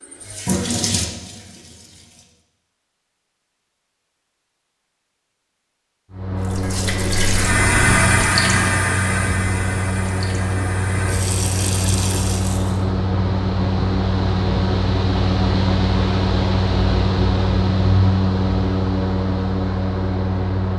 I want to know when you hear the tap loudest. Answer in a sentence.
The volume of the tap peaks at 8 seconds.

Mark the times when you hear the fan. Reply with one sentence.
The fan can be heard from 6.1 to 20.7 s.